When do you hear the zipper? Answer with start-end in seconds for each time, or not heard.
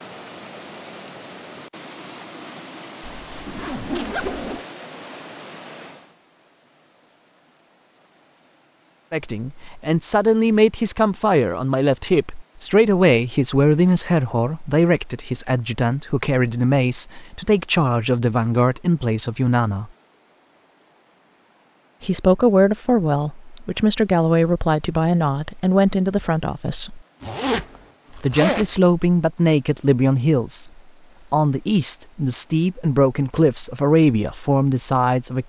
3.0-4.7, 27.2-28.8.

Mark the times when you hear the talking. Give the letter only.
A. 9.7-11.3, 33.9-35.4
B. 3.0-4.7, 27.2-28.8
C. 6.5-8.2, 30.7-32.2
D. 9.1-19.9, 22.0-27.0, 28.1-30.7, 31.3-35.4
D.